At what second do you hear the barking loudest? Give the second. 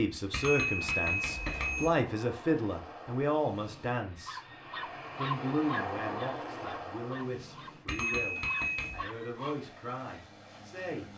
5 s.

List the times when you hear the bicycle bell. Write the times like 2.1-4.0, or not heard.
0.3-1.9, 7.8-9.1.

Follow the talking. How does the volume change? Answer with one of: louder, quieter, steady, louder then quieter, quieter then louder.
quieter.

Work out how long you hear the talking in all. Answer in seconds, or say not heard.
10 s.